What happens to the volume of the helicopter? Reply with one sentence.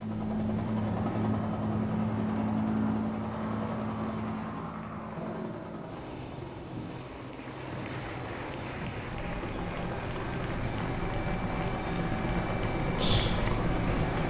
The volume of the helicopter goes down, then up.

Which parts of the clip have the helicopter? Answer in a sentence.
The helicopter can be heard from 0.0 to 14.2 s.